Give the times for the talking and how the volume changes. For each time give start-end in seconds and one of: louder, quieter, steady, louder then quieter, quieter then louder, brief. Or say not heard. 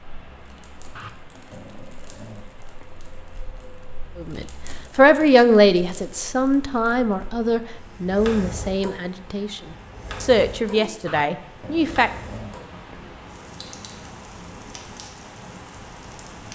4.2-9.6 quieter
10.2-12.1 brief.